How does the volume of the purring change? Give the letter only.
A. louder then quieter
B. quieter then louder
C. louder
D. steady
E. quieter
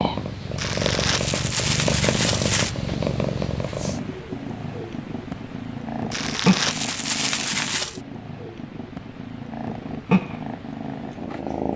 B.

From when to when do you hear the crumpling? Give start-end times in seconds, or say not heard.
0.6-2.8, 6.1-8.0.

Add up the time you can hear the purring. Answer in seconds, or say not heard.
12 s.